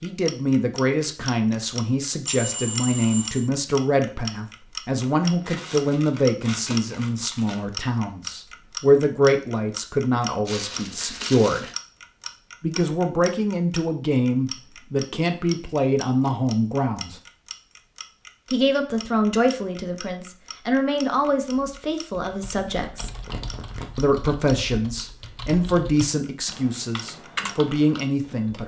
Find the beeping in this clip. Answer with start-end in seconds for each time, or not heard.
2.2-3.5.